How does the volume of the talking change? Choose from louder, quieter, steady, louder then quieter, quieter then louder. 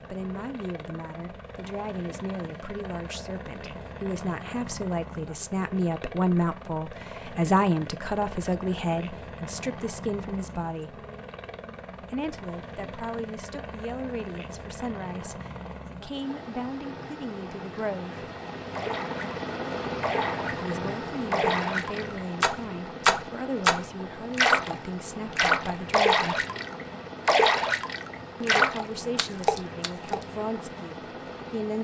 louder then quieter.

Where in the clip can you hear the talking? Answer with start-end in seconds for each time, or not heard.
0.1-11.1, 12.0-18.2, 20.5-26.4, 28.4-31.8.